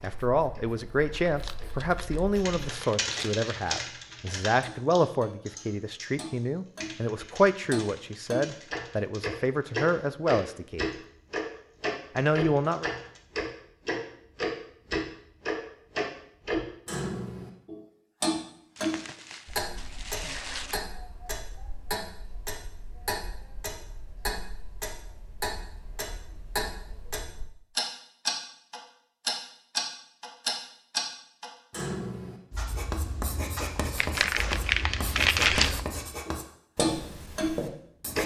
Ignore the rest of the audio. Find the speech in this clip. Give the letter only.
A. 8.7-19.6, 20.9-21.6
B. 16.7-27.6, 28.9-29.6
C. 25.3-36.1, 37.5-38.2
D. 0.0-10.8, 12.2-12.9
D.